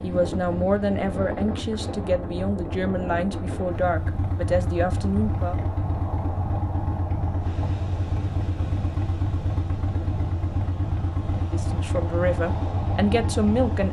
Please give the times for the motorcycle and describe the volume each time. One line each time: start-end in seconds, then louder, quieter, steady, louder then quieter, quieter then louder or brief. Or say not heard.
0.0-13.8 louder.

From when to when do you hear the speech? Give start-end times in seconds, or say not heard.
0.0-5.6, 11.3-13.8.